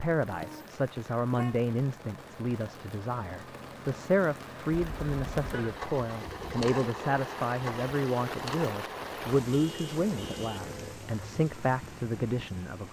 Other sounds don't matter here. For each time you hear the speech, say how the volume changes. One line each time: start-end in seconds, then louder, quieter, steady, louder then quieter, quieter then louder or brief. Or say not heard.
0.0-12.8 steady.